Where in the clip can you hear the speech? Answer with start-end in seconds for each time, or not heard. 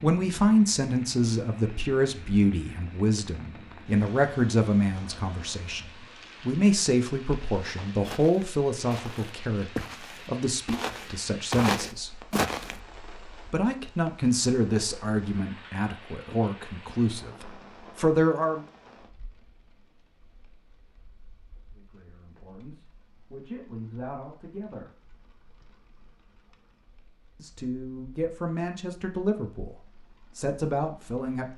0.0-12.1, 13.5-18.6, 21.8-24.9, 27.4-31.5.